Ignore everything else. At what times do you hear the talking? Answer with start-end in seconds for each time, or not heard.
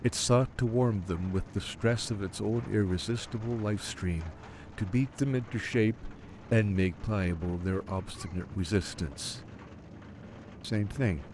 0.0-9.4, 10.6-11.2.